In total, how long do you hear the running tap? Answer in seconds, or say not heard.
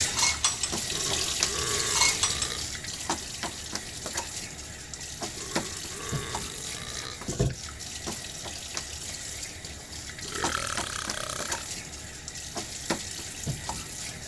14 s.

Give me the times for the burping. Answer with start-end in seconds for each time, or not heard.
0.8-2.6, 5.2-7.2, 10.2-11.7.